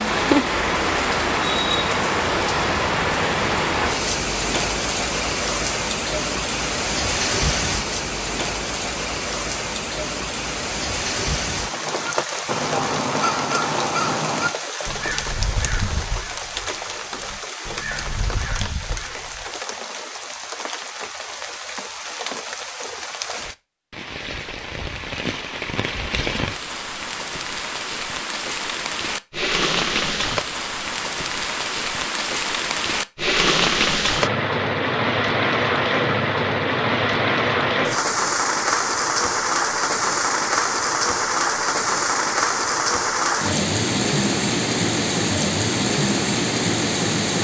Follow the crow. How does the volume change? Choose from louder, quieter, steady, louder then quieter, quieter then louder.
quieter then louder.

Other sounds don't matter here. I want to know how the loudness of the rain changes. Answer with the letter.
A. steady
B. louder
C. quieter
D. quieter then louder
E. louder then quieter
D.